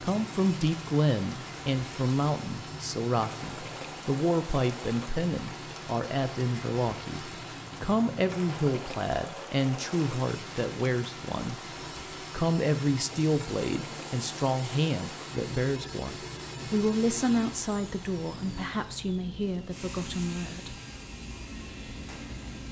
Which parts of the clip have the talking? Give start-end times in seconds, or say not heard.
0.0-11.6, 12.3-20.8.